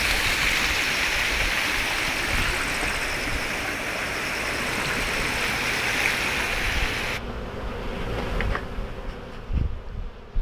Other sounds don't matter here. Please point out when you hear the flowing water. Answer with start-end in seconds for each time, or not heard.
0.0-7.2.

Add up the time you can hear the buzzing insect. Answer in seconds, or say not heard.
10 s.